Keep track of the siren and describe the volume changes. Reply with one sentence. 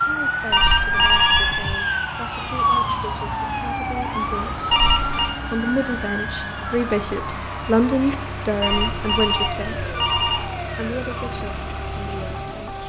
The volume of the siren goes down.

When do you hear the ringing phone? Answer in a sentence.
You can hear the ringing phone from 0.5 to 1.8 s, from 4.7 to 5.3 s and from 8.6 to 10.5 s.